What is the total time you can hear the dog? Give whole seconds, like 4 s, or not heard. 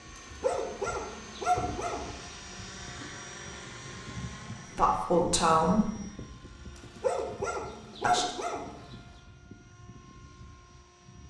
4 s.